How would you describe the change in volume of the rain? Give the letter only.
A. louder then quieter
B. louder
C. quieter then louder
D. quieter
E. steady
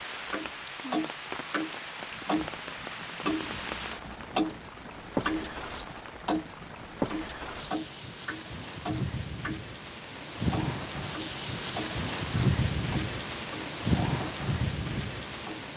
B.